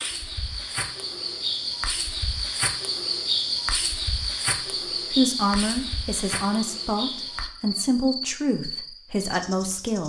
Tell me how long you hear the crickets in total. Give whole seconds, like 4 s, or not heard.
10 s.